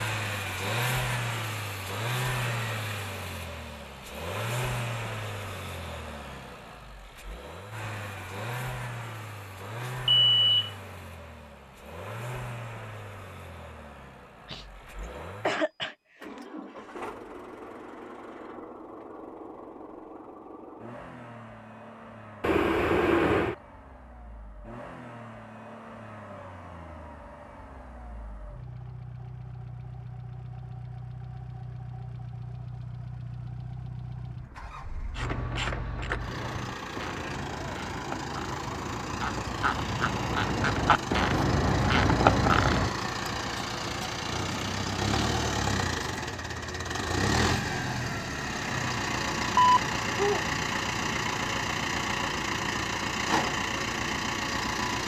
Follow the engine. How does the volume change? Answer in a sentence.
The volume of the engine goes down, then up.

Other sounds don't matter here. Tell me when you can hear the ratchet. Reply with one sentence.
You can hear the ratchet from 35.1 to 43.0 s.